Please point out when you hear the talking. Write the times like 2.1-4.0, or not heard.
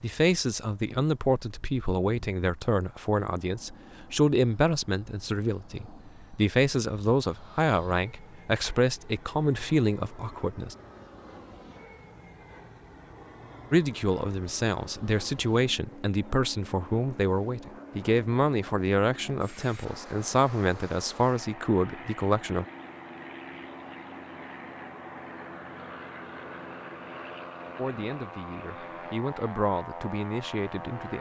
0.0-10.8, 13.7-22.6, 27.8-31.1.